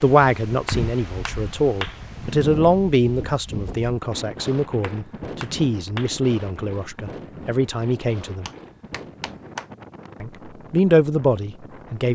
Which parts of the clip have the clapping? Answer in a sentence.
You can hear the clapping from 0.7 to 2.0 s, from 4.8 to 6.2 s and from 8.4 to 9.7 s.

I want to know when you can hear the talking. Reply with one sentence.
You can hear the talking from 0.0 to 8.5 s and from 10.2 to 12.1 s.